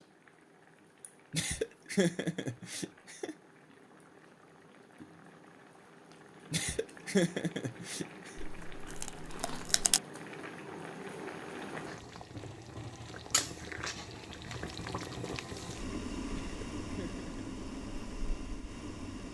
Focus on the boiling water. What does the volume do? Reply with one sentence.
The volume of the boiling water goes up.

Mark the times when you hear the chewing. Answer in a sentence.
You can hear the chewing from 8.4 to 10.0 s.